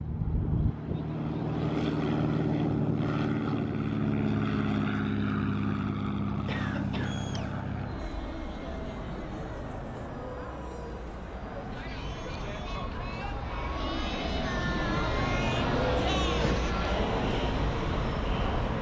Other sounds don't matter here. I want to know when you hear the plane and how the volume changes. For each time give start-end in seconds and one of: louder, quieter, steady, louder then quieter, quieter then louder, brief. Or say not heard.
0.0-18.7 quieter then louder.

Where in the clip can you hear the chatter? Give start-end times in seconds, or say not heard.
7.0-18.7.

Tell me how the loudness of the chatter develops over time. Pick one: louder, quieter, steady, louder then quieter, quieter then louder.
louder.